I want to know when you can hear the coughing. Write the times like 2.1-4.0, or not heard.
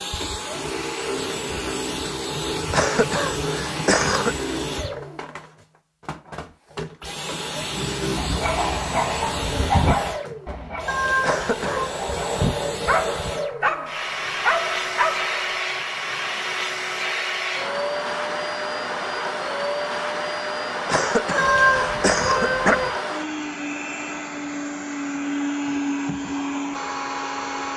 2.7-4.3, 11.2-11.9, 20.9-22.8.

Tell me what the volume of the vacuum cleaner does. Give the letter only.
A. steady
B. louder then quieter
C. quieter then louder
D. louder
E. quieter
A.